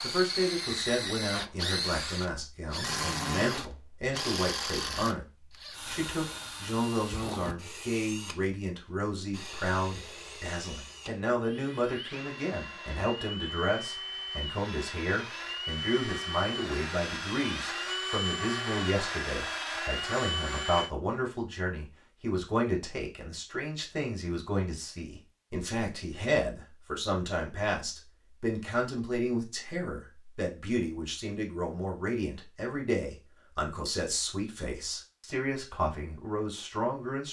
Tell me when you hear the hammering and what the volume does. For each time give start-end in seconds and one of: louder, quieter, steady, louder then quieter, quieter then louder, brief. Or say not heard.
not heard.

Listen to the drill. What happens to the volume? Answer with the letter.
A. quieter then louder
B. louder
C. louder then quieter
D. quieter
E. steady
A.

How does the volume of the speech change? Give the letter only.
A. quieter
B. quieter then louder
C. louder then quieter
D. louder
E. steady
E.